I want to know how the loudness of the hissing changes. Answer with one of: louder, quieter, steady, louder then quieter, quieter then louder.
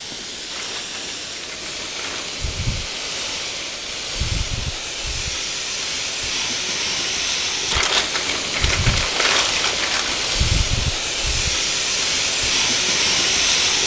louder.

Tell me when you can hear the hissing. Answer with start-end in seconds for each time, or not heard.
0.0-13.8.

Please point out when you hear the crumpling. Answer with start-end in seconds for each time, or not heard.
0.5-2.4, 7.7-10.4.